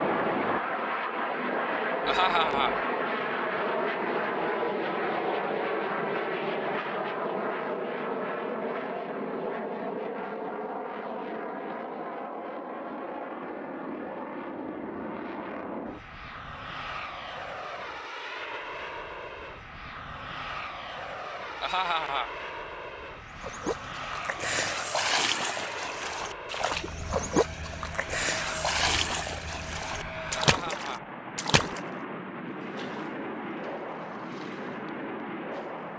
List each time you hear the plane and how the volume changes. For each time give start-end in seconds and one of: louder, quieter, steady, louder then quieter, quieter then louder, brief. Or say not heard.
0.0-35.9 quieter.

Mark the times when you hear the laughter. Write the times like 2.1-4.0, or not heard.
2.0-2.8, 21.6-22.3, 30.4-31.1.